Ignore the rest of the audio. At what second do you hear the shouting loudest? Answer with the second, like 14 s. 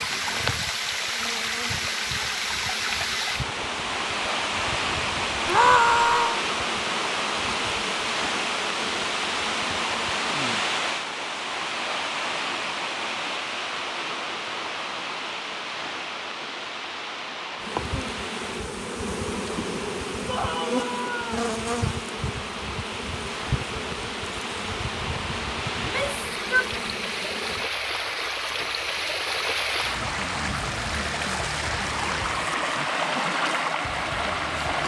6 s.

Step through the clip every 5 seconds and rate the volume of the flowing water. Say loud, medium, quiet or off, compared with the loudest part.
loud, loud, loud, medium, medium, loud, loud.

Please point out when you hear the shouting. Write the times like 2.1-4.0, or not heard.
5.5-6.4, 20.2-21.4, 25.8-26.7.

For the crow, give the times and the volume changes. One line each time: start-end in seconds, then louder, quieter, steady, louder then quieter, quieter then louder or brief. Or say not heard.
not heard.